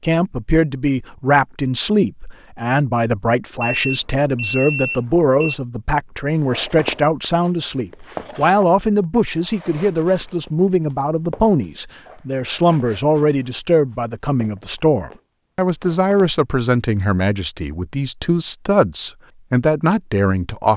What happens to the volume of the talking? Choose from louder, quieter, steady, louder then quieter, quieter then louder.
steady.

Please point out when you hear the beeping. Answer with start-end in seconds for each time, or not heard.
3.6-5.5.